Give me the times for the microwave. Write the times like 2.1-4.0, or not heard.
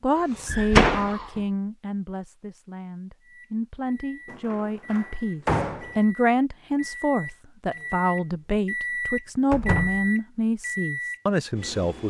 3.2-12.0.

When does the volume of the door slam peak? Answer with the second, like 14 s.
1 s.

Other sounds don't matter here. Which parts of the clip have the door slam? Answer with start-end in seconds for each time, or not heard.
0.5-1.2, 4.2-6.0, 9.5-10.1.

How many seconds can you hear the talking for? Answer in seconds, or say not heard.
12 s.